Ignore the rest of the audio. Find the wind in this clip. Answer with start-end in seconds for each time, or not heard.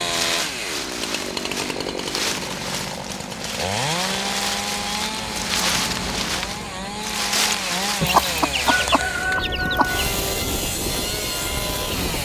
0.0-12.2.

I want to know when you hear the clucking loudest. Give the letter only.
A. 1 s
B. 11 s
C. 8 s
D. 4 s
C.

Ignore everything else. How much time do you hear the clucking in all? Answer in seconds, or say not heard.
2 s.